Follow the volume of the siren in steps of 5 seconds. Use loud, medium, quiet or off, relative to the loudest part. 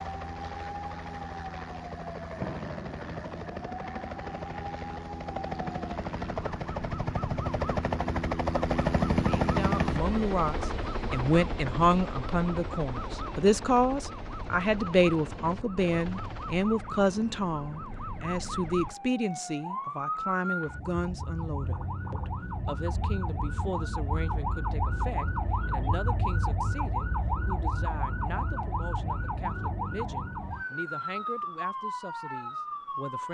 medium, medium, medium, medium, loud, loud, loud.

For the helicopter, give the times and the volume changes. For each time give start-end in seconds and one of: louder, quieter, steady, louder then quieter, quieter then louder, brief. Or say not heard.
0.0-16.7 louder then quieter.